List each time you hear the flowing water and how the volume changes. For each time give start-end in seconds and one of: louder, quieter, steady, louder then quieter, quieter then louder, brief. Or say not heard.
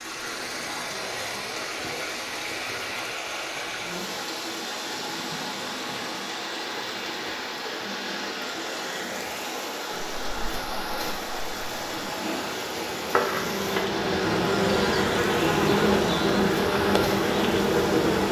0.0-18.2 steady.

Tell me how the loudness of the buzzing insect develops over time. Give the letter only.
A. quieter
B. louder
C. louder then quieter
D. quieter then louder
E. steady
B.